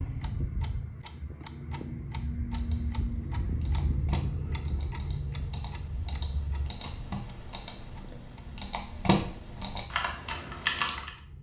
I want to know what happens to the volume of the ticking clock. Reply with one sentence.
The loudness of the ticking clock goes down.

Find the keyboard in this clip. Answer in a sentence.
The keyboard can be heard from 2.5 to 11.1 s.